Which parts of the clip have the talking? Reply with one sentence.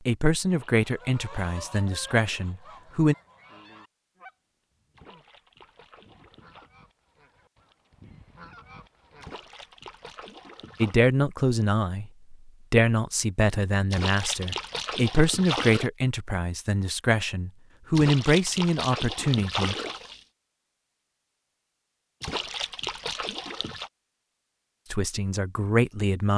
You can hear the talking from 0.1 to 3.1 s, from 10.8 to 19.8 s and from 24.9 to 26.3 s.